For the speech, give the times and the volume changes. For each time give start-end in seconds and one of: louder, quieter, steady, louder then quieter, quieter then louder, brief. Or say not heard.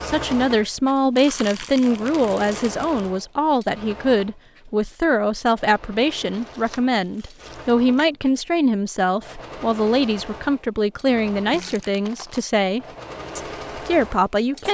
0.0-14.6 steady.